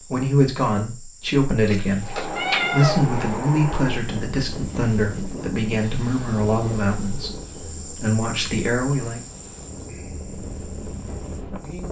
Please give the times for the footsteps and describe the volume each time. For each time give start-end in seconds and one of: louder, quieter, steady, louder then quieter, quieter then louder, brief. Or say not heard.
not heard.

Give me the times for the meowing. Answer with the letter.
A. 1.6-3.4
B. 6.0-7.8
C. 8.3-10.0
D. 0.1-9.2
A.